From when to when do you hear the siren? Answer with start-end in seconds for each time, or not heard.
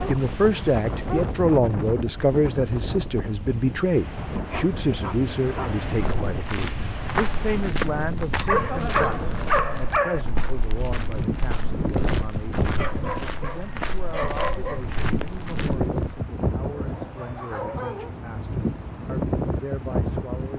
not heard.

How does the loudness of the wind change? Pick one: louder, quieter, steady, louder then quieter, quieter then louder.
steady.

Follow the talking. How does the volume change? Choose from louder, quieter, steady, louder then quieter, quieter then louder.
quieter.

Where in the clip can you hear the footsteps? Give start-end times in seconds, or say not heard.
5.8-16.2.